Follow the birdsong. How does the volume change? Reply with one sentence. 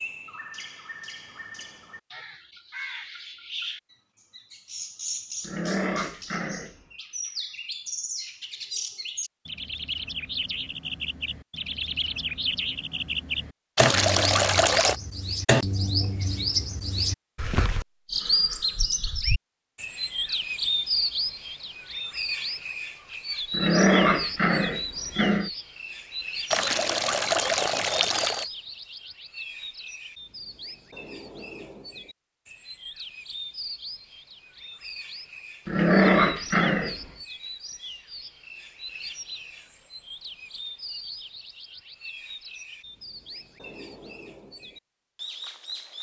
The loudness of the birdsong goes up, then down.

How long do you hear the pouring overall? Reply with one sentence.
You can hear the pouring for 3 seconds altogether.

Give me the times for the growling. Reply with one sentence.
The growling can be heard from 5.4 to 6.8 s, from 23.5 to 25.5 s and from 35.6 to 37.0 s.